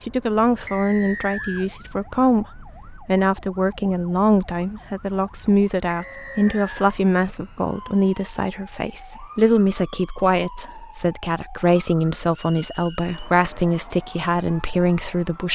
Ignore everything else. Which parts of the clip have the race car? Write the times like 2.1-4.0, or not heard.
not heard.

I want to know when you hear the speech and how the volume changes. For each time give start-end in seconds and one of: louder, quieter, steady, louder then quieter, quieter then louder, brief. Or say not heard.
0.1-15.5 steady.